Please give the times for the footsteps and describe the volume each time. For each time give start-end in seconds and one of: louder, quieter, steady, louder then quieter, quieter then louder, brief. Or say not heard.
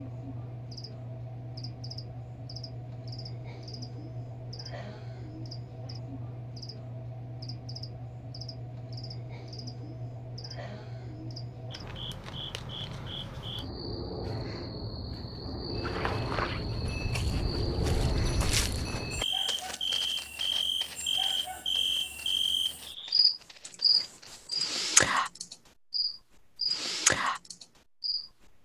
15.7-24.4 quieter.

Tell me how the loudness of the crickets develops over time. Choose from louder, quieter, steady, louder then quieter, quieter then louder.
louder.